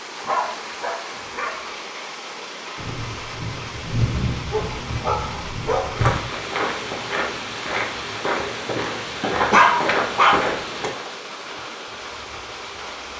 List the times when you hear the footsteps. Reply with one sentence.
The footsteps can be heard from 6.0 to 13.1 s.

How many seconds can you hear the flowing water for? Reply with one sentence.
The flowing water can be heard for 13 seconds in total.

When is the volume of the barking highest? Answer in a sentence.
The volume of the barking peaks at 10 seconds.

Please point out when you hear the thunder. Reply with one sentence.
The thunder can be heard from 2.8 to 6.2 s.